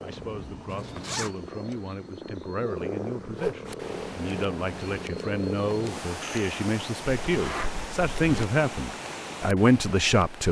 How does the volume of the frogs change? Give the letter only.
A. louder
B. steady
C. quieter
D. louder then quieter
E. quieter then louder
A.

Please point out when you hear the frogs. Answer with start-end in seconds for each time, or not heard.
0.0-6.5.